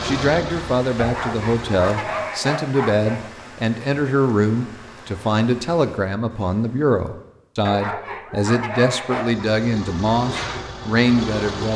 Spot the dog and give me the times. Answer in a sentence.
The dog can be heard from 0.9 to 3.3 s and from 7.7 to 9.5 s.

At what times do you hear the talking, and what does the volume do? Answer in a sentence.
The talking can be heard from 0.0 to 11.7 s, at a steady volume.